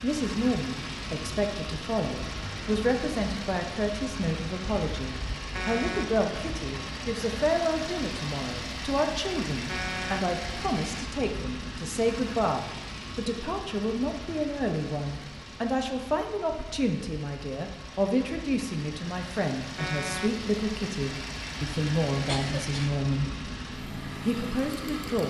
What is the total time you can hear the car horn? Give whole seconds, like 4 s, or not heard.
2 s.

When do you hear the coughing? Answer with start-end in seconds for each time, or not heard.
22.1-22.9.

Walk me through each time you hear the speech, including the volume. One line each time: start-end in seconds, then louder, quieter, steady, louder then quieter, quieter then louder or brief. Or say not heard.
0.0-23.4 steady
24.2-25.2 brief.